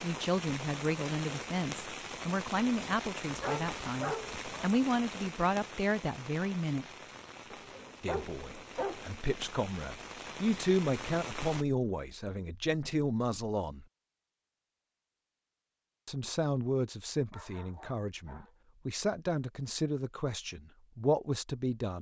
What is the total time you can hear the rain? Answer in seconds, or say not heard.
12 s.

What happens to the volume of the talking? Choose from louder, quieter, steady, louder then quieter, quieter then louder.
steady.